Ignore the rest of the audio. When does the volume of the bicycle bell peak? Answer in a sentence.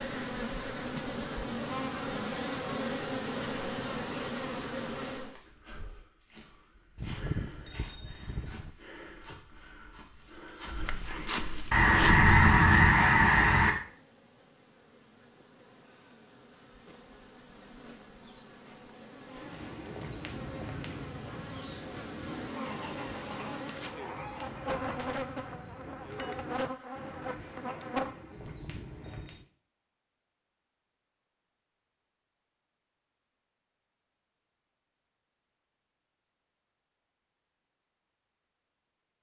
The volume of the bicycle bell peaks at 7 seconds.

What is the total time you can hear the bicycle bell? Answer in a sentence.
The bicycle bell can be heard for 3 seconds in total.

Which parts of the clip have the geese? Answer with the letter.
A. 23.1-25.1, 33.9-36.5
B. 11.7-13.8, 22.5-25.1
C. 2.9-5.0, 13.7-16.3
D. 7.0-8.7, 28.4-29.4
B.